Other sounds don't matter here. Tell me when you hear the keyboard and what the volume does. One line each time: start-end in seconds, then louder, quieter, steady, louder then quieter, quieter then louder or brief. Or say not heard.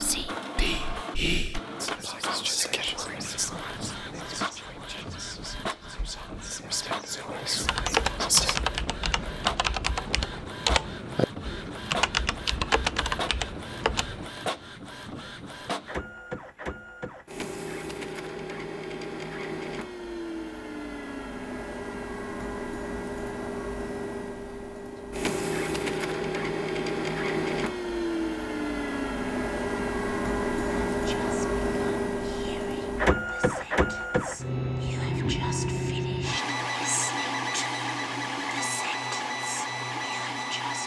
7.6-14.3 steady.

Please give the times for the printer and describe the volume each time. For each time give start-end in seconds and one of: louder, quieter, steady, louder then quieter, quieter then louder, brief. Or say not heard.
0.0-40.8 louder.